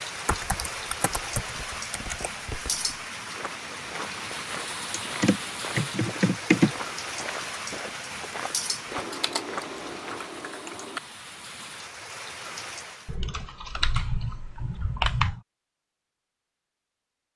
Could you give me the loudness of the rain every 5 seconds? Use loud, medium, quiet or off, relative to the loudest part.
loud, loud, medium, off.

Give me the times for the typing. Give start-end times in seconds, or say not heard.
0.2-2.3, 4.9-6.8, 9.0-11.0, 13.1-15.4.